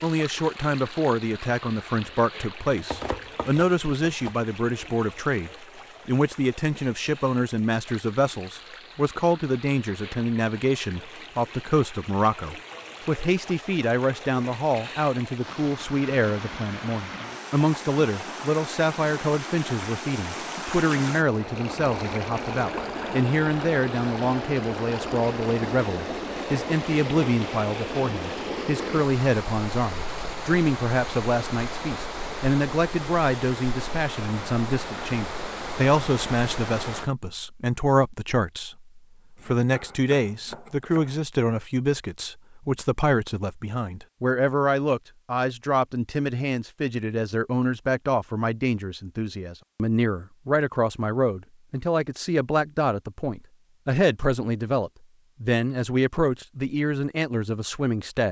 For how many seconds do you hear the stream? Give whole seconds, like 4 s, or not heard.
37 s.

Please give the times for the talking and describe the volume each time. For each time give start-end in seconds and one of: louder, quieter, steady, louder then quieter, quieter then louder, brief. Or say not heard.
0.0-58.2 steady.